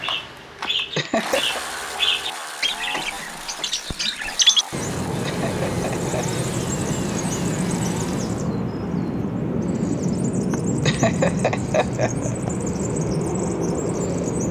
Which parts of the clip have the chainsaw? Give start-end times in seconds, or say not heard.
0.0-8.4.